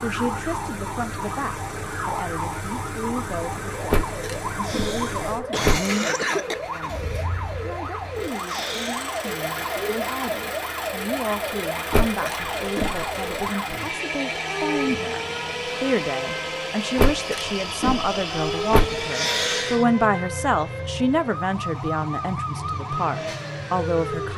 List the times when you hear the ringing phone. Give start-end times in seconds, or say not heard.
not heard.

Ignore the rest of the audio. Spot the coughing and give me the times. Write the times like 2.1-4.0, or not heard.
4.6-6.5, 8.4-9.1, 19.1-19.9.